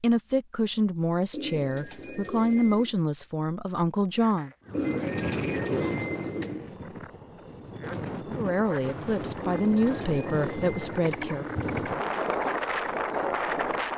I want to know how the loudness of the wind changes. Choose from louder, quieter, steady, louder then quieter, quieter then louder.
quieter then louder.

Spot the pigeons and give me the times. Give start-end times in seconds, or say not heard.
1.3-2.9, 4.7-6.7, 9.4-12.1.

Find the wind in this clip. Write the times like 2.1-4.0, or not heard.
4.7-13.9.